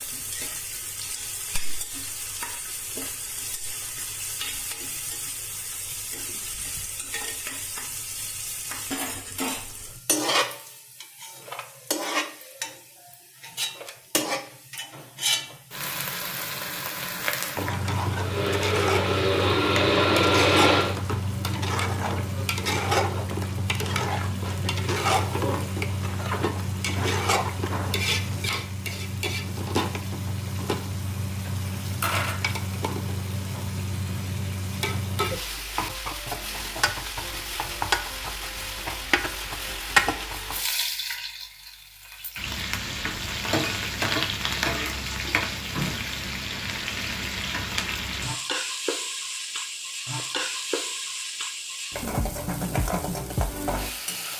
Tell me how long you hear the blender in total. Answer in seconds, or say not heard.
3 s.